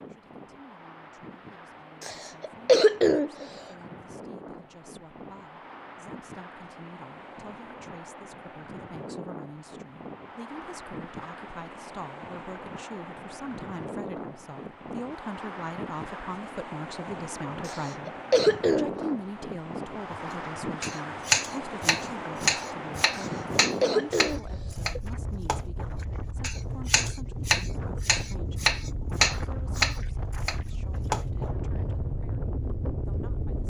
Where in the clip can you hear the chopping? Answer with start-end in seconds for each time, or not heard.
20.1-31.5.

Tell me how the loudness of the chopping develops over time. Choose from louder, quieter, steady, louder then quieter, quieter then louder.
quieter then louder.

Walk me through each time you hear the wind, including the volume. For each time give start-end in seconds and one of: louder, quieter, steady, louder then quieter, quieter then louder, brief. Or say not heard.
0.0-33.6 louder.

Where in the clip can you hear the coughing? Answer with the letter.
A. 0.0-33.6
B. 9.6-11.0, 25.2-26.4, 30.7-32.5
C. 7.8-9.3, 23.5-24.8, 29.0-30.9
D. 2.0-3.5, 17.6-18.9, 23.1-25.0
D.